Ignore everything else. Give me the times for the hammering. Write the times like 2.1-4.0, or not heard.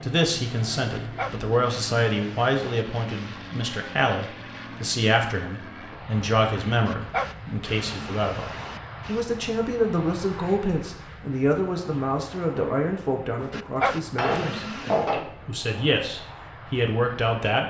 14.2-15.9.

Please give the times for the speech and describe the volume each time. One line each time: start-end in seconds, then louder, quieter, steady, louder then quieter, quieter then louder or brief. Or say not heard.
0.0-17.6 steady.